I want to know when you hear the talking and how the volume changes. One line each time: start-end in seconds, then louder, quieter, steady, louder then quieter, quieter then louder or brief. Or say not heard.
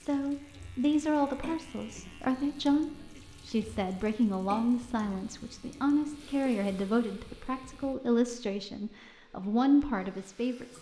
0.0-10.7 steady.